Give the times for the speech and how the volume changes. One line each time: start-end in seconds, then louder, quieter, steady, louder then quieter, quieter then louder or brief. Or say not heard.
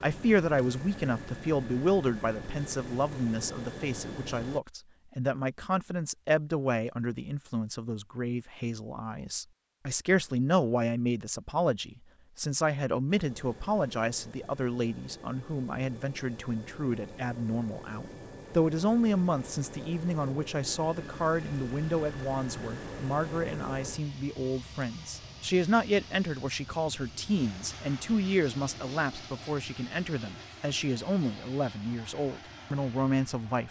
0.0-33.6 steady.